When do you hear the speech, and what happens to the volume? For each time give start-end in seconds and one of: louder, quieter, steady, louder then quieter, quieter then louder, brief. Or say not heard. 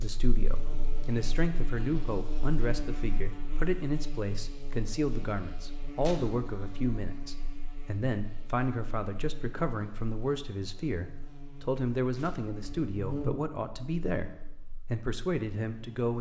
0.0-16.1 steady.